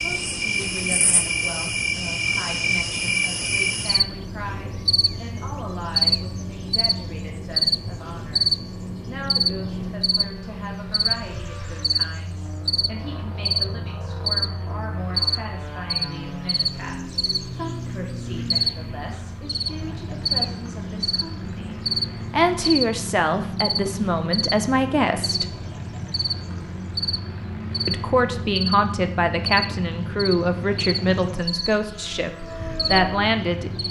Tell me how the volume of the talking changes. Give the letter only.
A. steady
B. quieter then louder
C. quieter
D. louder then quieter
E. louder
E.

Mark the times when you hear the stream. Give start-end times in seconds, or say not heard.
not heard.